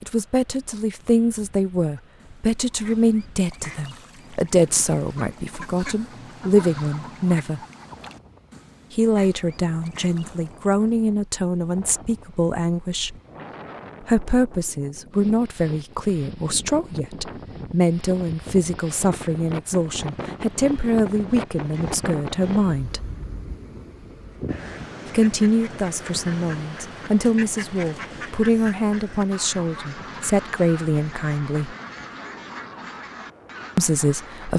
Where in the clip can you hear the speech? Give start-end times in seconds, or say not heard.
0.0-7.6, 8.9-13.2, 14.0-23.1, 25.1-31.8, 33.8-34.5.